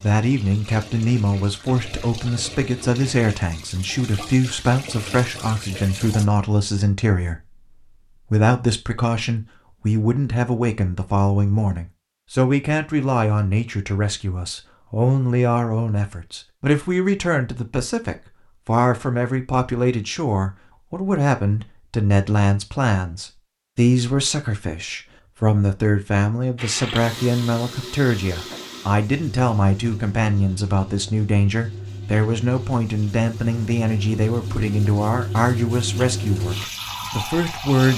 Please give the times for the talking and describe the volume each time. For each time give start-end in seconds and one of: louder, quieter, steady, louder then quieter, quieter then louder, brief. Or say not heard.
0.0-37.9 steady.